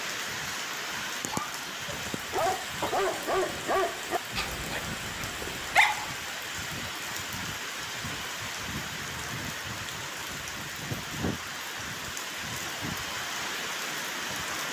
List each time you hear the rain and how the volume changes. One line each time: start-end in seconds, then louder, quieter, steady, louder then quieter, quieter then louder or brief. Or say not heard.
0.0-14.6 steady.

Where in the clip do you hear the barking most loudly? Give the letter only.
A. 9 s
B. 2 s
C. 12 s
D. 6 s
D.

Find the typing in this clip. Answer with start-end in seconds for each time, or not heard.
not heard.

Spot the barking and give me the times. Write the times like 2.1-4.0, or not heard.
1.3-6.2.